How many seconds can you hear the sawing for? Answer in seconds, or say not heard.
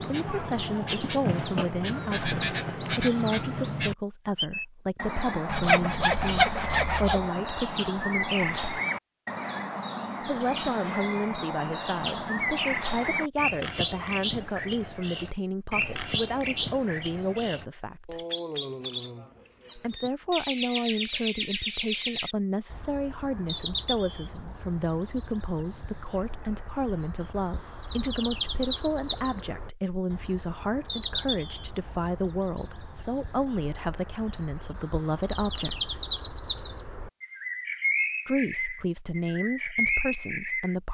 2 s.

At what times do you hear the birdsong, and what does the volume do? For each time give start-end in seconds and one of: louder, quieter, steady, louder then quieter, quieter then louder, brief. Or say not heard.
0.0-40.8 steady.